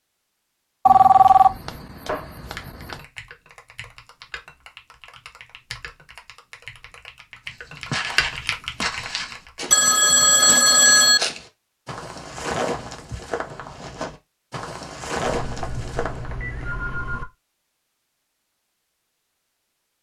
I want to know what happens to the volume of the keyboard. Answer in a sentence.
The volume of the keyboard goes up.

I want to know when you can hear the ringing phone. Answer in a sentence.
You can hear the ringing phone from 0.8 to 3.0 s, from 9.7 to 11.2 s and from 15.2 to 17.2 s.